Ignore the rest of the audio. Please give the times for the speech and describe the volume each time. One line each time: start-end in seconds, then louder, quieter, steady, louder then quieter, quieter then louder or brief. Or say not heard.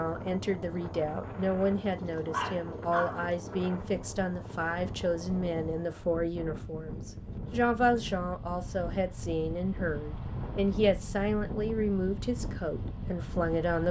0.0-13.8 steady.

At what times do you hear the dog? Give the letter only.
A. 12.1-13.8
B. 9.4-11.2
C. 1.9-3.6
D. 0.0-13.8
C.